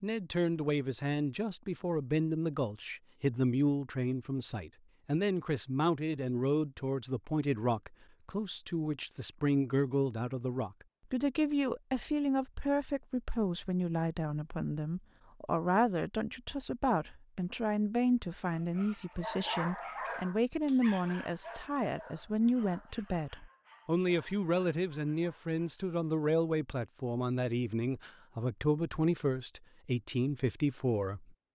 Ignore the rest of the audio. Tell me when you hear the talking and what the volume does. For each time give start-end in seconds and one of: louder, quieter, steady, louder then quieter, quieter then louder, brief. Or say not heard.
0.0-31.3 steady.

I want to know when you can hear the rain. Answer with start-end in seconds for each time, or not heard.
not heard.